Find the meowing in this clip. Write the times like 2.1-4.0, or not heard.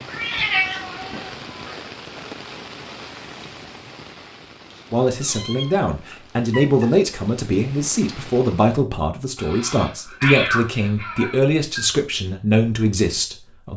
0.1-1.8, 4.7-6.9, 9.3-11.8.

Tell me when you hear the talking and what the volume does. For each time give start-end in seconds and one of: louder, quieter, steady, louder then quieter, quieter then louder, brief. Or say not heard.
4.9-13.7 steady.